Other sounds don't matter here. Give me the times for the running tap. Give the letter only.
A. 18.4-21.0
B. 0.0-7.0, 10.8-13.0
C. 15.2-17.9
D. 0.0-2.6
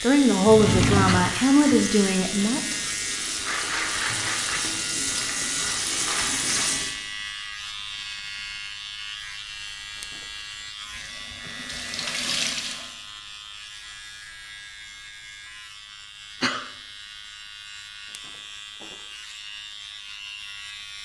B.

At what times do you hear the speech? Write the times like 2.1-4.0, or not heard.
0.0-2.6.